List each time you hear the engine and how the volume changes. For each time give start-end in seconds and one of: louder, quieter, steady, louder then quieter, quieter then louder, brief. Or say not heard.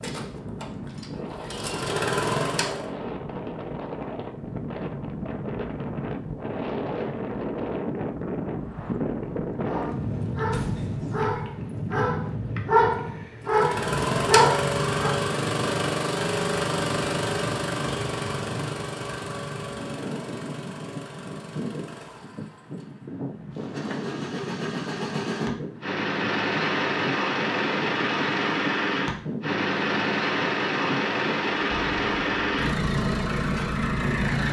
0.0-2.9 brief
13.4-34.4 quieter then louder.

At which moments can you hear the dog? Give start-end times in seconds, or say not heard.
9.7-15.2.